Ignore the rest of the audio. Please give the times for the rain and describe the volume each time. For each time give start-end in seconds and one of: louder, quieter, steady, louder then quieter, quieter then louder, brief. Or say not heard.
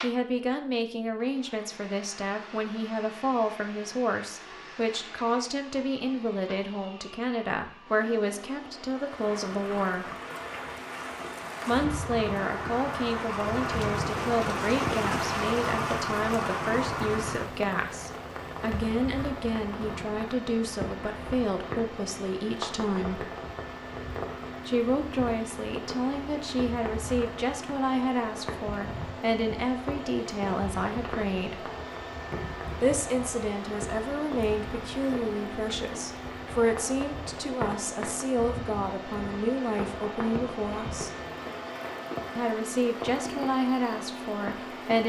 9.0-45.0 quieter.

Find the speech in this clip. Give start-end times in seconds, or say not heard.
0.0-10.1, 11.7-23.3, 24.6-31.7, 32.8-41.1, 42.4-45.0.